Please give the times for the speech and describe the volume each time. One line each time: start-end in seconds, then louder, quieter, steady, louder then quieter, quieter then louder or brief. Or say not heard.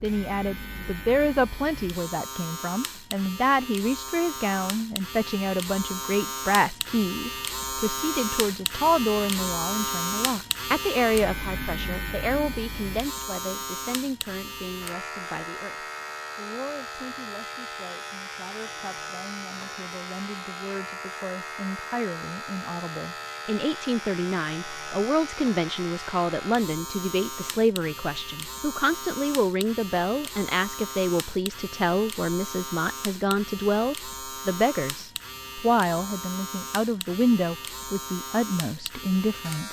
0.0-39.6 quieter then louder.